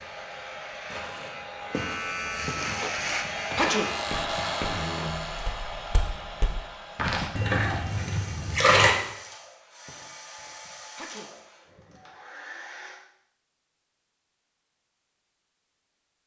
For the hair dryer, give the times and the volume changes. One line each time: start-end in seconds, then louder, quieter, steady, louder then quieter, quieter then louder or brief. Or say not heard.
0.0-13.0 louder then quieter.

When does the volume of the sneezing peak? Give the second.
4 s.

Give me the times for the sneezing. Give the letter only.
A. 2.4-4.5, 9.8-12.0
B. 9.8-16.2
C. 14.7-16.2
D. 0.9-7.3
A.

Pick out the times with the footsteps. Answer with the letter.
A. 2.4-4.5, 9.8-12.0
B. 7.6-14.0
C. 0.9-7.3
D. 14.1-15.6
C.